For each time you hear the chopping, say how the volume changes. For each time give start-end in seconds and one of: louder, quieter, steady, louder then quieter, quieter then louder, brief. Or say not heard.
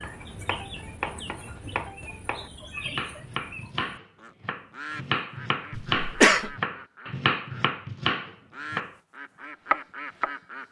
0.0-8.9 louder
9.7-10.3 brief.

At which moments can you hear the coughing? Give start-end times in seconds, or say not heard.
5.8-6.5.